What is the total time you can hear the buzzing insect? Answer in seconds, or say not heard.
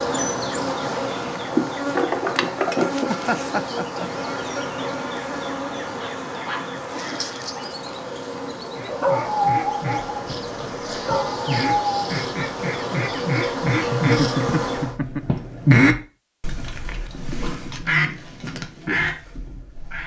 15 s.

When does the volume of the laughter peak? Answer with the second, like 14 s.
14 s.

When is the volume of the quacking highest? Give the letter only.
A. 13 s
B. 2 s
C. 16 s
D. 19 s
C.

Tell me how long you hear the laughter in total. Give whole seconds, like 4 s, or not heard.
3 s.